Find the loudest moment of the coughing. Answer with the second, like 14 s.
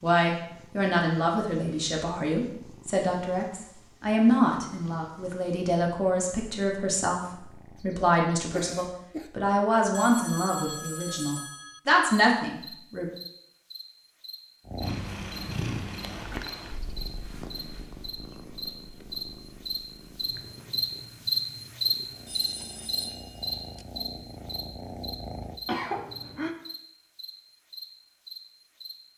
26 s.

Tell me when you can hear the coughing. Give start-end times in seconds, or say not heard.
7.8-9.3, 25.6-26.6.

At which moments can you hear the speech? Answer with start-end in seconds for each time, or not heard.
0.0-13.1.